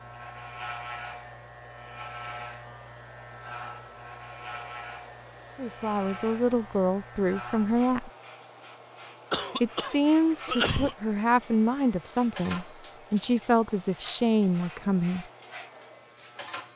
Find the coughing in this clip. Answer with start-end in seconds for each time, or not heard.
9.3-10.9.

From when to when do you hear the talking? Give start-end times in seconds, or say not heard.
5.5-8.1, 9.6-15.2.